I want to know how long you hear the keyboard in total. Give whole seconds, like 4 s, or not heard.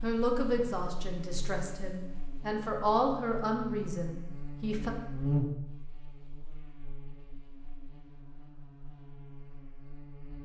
not heard.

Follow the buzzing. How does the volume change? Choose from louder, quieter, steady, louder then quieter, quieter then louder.
louder then quieter.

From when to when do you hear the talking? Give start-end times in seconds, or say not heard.
0.0-4.9.